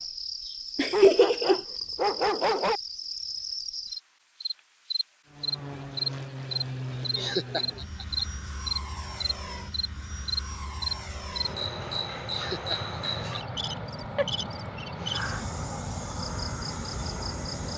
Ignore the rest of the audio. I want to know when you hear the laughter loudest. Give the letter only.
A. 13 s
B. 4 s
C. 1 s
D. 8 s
C.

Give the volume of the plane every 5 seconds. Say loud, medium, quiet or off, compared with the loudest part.
off, loud, loud, loud.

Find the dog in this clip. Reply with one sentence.
You can hear the dog from 0.9 to 2.8 s.